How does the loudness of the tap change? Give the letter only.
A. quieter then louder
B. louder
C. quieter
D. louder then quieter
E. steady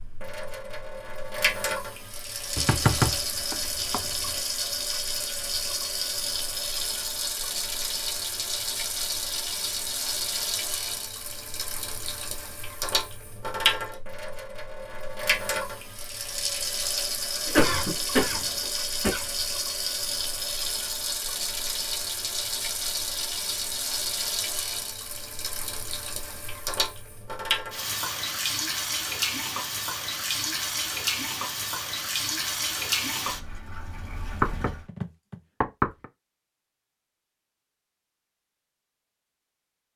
E.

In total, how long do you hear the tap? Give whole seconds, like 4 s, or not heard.
35 s.